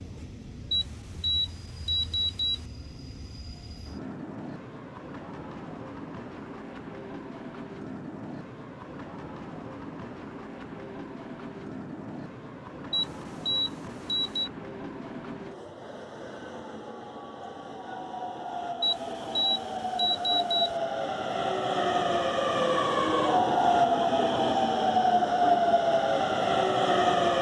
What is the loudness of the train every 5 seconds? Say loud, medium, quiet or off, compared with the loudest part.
quiet, quiet, quiet, quiet, loud, loud.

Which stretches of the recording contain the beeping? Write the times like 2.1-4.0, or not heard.
0.7-2.6, 12.9-14.5, 18.8-20.8.